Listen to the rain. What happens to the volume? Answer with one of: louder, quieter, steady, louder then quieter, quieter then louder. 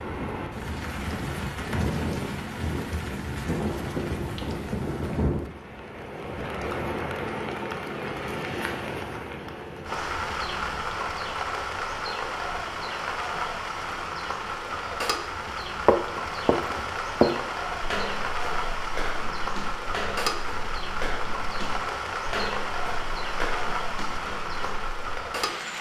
steady.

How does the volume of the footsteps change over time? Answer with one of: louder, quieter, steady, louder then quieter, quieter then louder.
quieter.